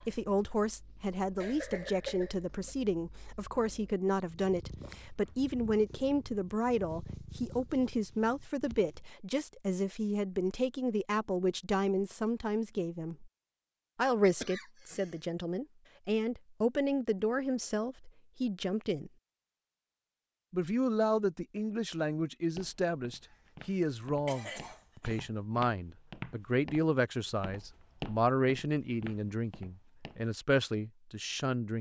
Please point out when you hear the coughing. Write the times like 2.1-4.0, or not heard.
1.4-2.7, 14.4-15.2, 24.2-25.2.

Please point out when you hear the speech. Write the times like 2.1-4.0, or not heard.
0.1-13.3, 13.9-19.1, 20.5-31.7.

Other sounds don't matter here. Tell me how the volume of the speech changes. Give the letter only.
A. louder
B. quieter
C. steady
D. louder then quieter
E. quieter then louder
C.